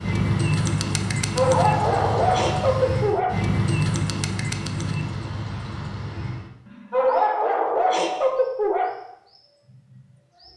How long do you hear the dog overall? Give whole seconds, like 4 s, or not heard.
4 s.